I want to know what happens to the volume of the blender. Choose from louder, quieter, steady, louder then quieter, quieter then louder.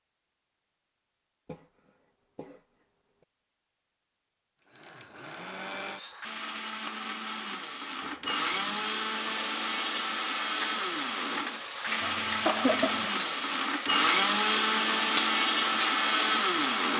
louder.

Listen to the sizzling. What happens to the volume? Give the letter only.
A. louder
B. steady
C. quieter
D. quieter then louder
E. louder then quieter
B.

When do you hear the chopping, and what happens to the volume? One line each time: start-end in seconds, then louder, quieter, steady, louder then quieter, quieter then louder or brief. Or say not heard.
not heard.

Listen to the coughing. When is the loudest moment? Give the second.
13 s.